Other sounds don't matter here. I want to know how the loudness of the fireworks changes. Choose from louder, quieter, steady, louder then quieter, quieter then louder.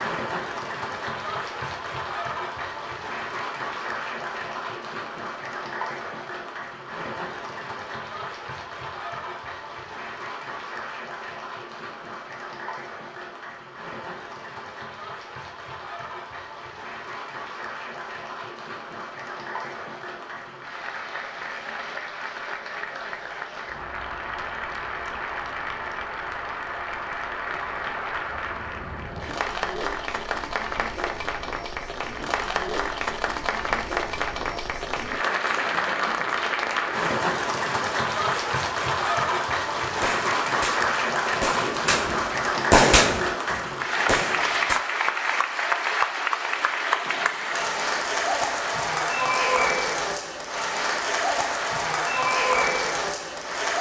louder then quieter.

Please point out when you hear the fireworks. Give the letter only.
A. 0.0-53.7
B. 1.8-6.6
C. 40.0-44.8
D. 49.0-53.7
C.